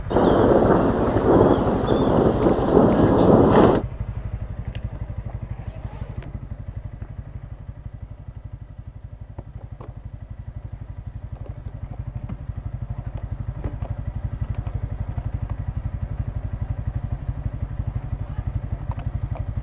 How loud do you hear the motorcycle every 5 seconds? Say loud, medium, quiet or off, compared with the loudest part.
loud, medium, loud, loud.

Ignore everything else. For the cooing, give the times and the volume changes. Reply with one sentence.
You can't hear the cooing here.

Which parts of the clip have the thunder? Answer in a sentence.
The thunder can be heard from 0.1 to 3.9 s.